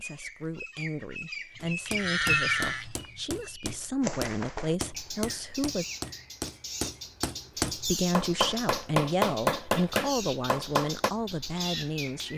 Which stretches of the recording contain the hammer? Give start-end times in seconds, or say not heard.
1.6-11.1.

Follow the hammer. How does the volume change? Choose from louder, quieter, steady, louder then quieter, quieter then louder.
louder.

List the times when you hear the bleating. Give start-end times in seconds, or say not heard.
1.6-3.2.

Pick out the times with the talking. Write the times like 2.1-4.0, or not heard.
0.0-5.8, 7.5-12.3.